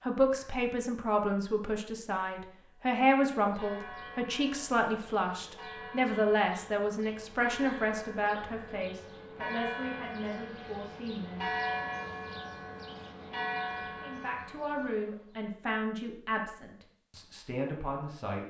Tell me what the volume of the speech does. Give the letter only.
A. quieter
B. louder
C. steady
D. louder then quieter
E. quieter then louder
A.